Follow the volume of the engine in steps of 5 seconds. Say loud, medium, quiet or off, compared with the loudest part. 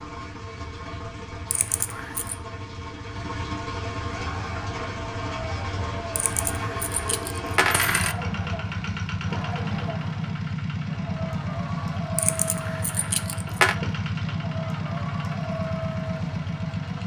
medium, loud, loud, loud.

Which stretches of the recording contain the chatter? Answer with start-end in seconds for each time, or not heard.
4.1-17.0.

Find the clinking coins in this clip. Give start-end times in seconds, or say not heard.
1.5-2.4, 6.2-8.2, 12.2-13.8.